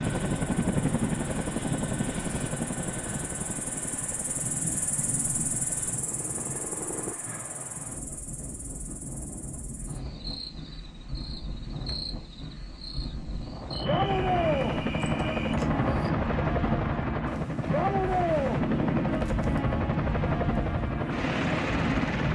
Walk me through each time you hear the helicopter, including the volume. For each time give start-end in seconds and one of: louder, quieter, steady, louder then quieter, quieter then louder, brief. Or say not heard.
0.0-7.2 quieter
13.8-22.3 steady.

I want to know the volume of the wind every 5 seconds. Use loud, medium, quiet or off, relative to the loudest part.
loud, medium, medium, loud, loud.